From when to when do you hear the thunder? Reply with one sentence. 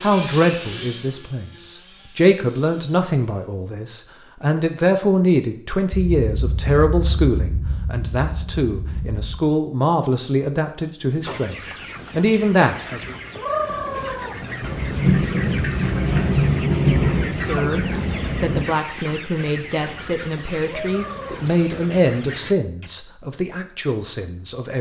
You can hear the thunder from 5.9 to 9.4 s and from 14.6 to 18.6 s.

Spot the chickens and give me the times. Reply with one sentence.
The chickens can be heard from 11.2 to 22.9 s.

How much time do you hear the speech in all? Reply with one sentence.
The speech can be heard for 21 seconds in total.